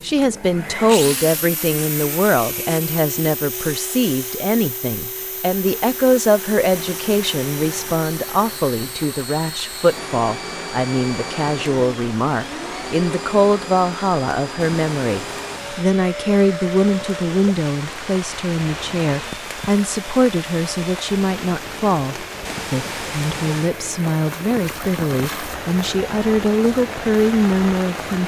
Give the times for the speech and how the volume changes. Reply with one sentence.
The speech can be heard from 0.0 to 28.2 s, at a steady volume.